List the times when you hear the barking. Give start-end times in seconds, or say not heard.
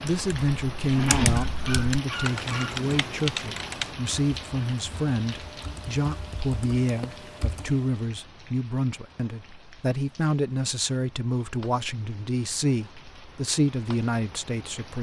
1.5-2.8.